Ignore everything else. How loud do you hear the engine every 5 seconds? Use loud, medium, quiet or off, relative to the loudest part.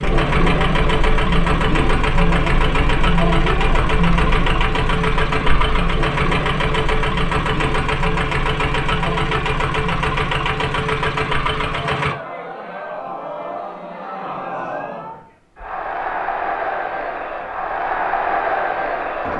loud, loud, loud, off.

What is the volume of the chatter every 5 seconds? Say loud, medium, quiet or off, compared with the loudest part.
loud, medium, medium, loud.